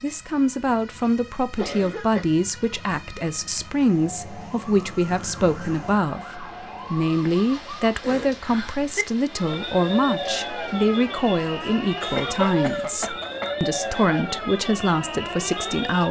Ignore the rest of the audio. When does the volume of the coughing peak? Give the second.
12 s.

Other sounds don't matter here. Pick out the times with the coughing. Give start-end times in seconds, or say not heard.
1.6-2.3, 8.0-8.4, 11.6-13.6.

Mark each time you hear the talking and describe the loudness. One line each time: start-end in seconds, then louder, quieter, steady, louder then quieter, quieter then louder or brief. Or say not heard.
0.0-16.0 steady.